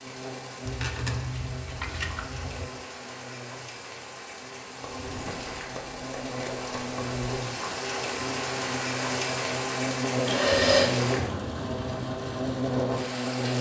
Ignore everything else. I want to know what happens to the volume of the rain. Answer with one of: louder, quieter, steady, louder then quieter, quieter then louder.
louder.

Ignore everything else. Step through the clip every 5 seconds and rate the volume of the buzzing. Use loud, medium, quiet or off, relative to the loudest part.
quiet, medium, loud.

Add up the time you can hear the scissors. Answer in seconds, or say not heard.
5 s.